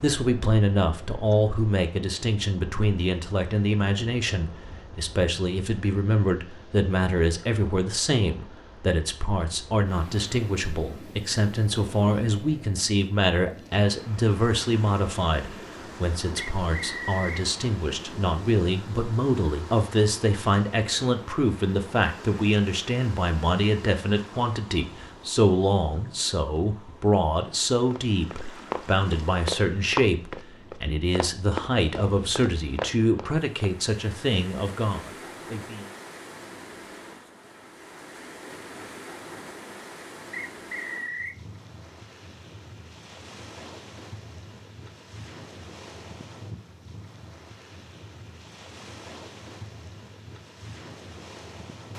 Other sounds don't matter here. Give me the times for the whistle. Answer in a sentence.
You can hear the whistle from 16.4 to 17.4 s and from 40.3 to 41.4 s.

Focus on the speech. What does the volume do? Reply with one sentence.
The loudness of the speech stays about the same.